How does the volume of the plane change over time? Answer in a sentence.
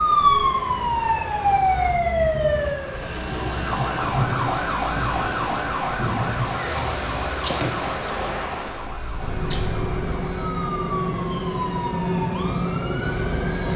The loudness of the plane goes up.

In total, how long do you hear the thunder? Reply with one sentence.
The thunder can be heard for 4 seconds in total.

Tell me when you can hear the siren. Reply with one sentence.
The siren can be heard from 0.0 to 13.7 s.